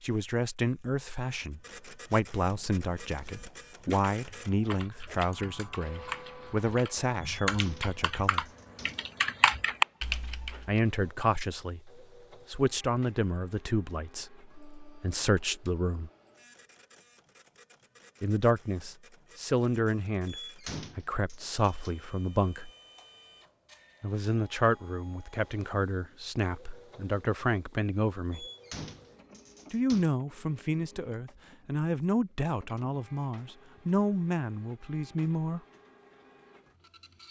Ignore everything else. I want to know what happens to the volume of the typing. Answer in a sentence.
The volume of the typing goes up.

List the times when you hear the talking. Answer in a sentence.
The talking can be heard from 0.0 to 8.5 s, from 10.7 to 16.1 s, from 18.2 to 22.7 s, from 24.0 to 28.4 s and from 29.7 to 35.6 s.